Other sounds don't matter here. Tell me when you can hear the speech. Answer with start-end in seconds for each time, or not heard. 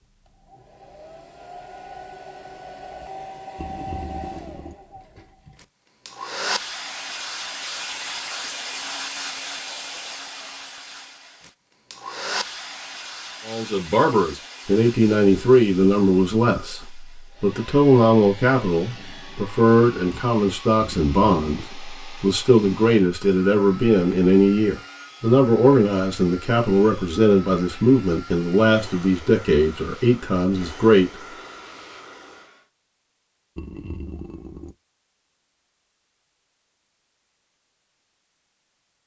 13.4-31.1.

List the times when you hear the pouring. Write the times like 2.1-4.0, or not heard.
3.5-4.8, 20.8-21.7, 33.5-34.8.